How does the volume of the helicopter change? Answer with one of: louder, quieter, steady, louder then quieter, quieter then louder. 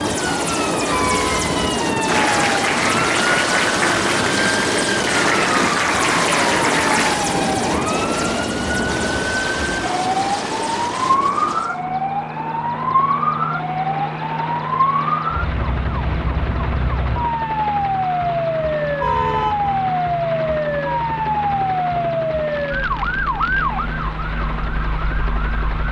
quieter.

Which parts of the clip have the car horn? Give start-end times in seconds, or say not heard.
0.9-1.8, 19.0-19.8.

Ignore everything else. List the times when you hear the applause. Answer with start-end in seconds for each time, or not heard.
2.0-7.2.